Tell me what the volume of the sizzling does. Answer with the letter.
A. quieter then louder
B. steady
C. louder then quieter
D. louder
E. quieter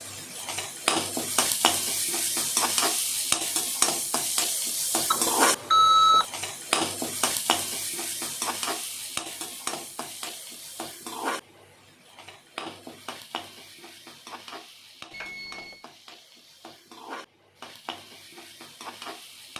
E.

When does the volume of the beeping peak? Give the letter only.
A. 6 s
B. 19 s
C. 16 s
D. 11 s
A.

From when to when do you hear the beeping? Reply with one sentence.
You can hear the beeping from 5.1 to 6.2 s and from 15.1 to 15.8 s.